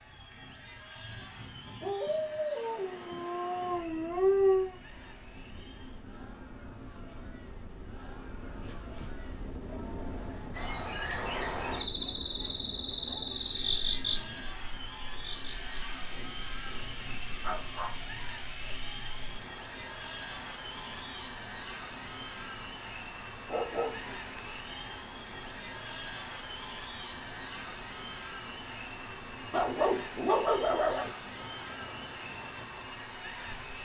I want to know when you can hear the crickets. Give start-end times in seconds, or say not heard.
10.5-33.7.